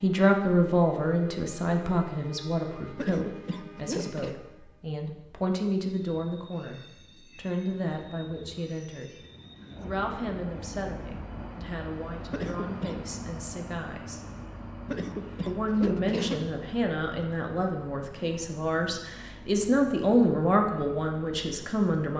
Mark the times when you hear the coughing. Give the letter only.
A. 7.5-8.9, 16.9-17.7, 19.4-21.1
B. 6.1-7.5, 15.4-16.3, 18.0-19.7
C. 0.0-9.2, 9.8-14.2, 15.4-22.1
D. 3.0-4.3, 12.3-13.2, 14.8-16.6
D.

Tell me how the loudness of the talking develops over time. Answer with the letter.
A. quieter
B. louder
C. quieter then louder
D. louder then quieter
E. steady
C.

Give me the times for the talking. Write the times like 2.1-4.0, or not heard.
0.0-9.2, 9.8-14.2, 15.4-22.1.